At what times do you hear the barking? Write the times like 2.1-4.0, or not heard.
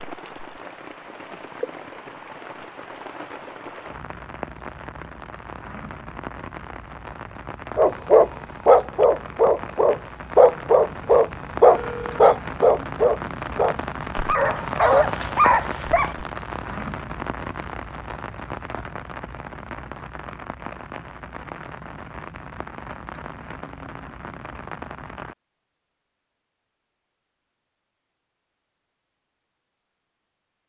7.8-16.2.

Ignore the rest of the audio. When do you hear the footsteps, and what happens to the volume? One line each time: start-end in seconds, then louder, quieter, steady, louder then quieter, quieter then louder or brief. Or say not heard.
not heard.